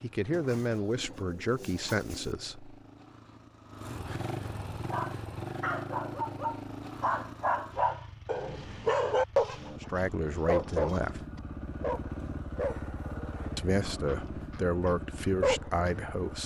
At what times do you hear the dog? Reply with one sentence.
You can hear the dog from 4.9 to 9.7 s, from 10.4 to 11.1 s and from 11.8 to 16.3 s.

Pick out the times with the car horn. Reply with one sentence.
The car horn can't be heard in this clip.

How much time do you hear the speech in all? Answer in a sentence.
You can hear the speech for 7 seconds altogether.